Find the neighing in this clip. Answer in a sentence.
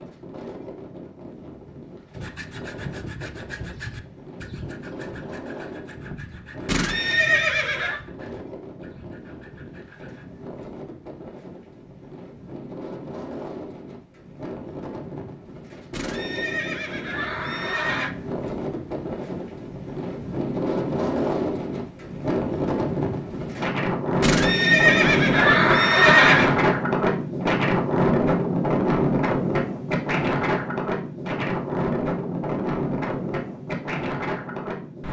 The neighing can be heard from 6.7 to 8.0 s, from 15.9 to 18.1 s and from 24.2 to 26.6 s.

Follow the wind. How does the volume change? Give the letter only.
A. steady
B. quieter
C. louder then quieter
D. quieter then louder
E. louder
E.